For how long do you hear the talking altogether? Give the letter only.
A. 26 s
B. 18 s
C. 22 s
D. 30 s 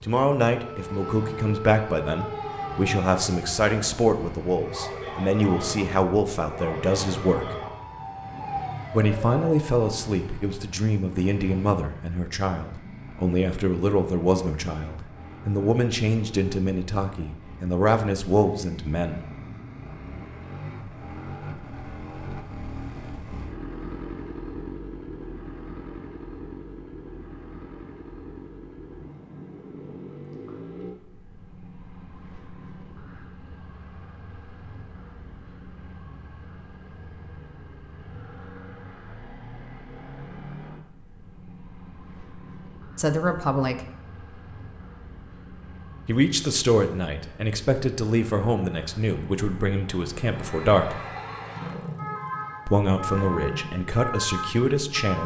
A.